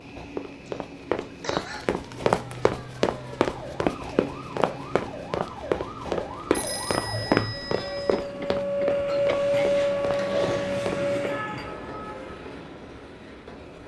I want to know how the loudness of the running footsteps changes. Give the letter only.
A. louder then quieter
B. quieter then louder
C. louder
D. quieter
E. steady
D.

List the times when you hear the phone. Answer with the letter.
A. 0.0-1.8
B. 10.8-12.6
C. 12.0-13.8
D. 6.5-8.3
D.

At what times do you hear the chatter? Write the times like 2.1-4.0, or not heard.
not heard.